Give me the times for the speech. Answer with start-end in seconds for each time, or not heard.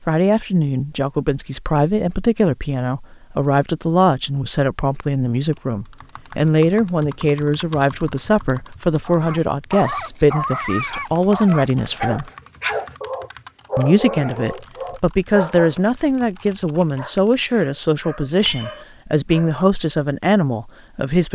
0.1-12.3, 13.8-21.2.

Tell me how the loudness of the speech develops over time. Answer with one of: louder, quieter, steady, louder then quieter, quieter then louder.
steady.